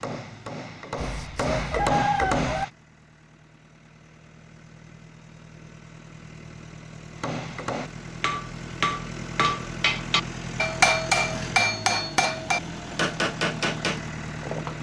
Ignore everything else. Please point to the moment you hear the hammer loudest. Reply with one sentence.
The loudest moment of the hammer is at 11 seconds.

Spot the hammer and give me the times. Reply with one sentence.
The hammer can be heard from 0.0 to 2.7 s and from 7.2 to 14.7 s.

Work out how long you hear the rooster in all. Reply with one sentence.
The rooster can be heard for 2 seconds in total.